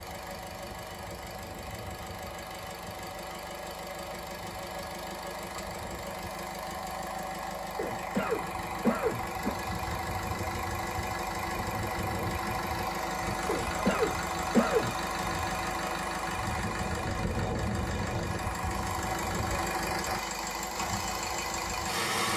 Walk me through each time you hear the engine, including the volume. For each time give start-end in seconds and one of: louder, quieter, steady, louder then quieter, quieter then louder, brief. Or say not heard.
0.0-22.3 louder.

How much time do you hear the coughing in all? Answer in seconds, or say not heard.
3 s.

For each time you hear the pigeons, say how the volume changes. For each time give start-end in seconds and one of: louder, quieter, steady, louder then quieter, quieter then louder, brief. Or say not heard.
not heard.